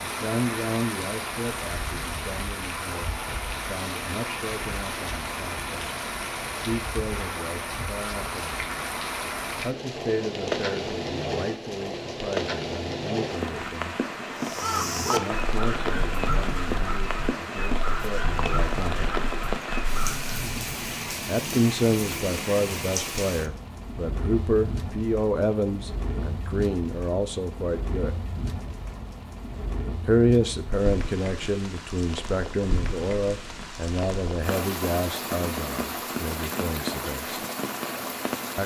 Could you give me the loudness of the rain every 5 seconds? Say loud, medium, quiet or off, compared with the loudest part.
loud, loud, loud, loud, loud, medium, medium, loud.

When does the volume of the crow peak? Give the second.
15 s.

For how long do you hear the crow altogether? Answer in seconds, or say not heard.
6 s.